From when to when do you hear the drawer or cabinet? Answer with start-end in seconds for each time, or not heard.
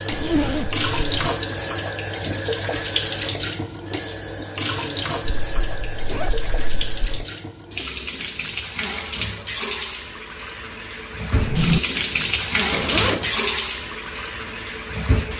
11.3-11.8.